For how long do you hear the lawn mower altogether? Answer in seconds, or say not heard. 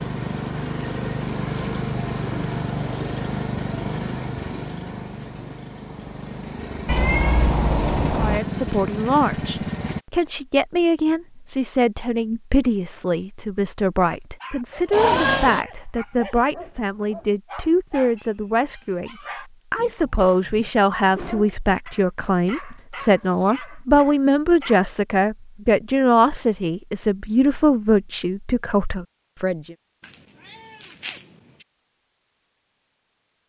10 s.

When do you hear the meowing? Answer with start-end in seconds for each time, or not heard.
6.8-8.4, 14.9-15.7, 30.4-31.6.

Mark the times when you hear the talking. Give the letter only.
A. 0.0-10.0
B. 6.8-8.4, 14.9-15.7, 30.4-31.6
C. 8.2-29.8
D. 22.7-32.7
C.